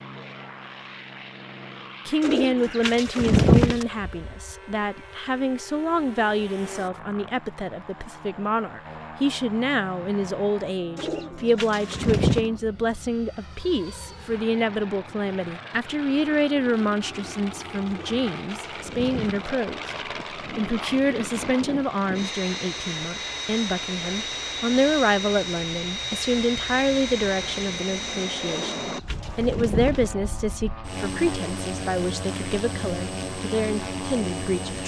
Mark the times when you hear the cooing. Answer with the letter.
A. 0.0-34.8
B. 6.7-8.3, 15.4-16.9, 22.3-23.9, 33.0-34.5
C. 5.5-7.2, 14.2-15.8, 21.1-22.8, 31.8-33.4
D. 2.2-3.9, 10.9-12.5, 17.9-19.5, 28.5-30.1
D.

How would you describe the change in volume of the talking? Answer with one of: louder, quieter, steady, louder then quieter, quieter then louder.
steady.